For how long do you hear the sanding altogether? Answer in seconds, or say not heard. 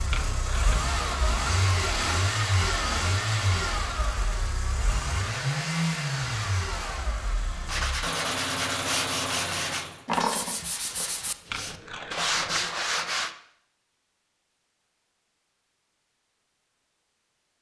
6 s.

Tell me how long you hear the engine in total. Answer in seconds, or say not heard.
10 s.